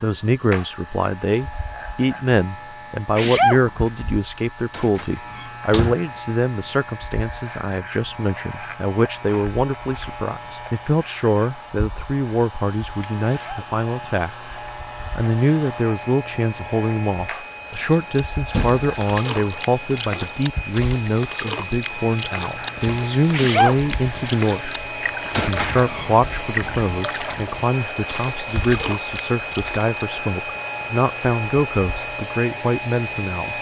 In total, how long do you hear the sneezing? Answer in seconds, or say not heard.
2 s.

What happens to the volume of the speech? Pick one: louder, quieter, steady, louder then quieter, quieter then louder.
steady.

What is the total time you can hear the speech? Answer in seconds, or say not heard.
32 s.